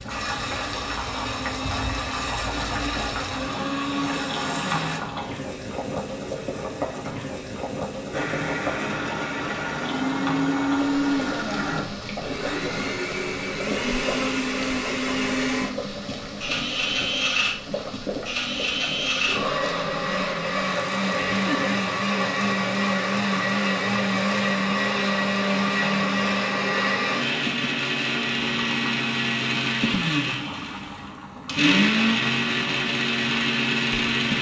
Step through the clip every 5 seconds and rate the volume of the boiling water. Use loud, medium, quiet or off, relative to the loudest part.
loud, loud, loud, loud, medium, medium, medium.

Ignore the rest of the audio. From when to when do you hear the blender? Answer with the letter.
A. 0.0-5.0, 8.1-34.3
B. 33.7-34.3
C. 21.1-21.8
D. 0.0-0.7
A.